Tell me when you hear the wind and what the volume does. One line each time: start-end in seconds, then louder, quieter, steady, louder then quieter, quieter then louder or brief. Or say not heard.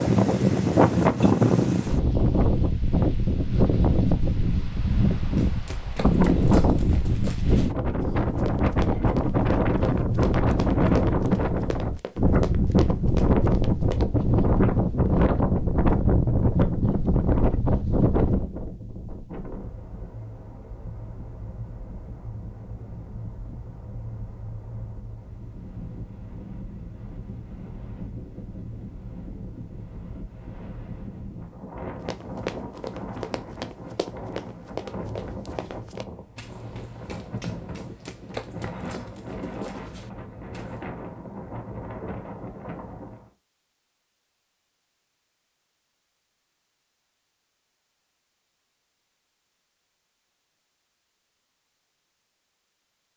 0.0-43.3 quieter.